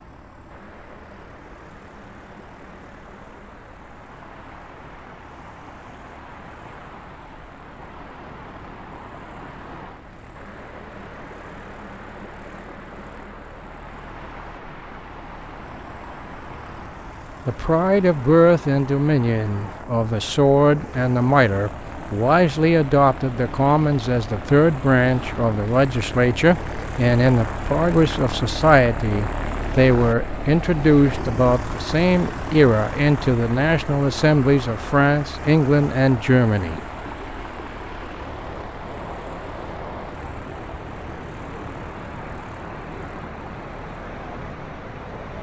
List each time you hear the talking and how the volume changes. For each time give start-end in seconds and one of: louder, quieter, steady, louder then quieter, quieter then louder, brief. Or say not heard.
17.4-36.8 steady.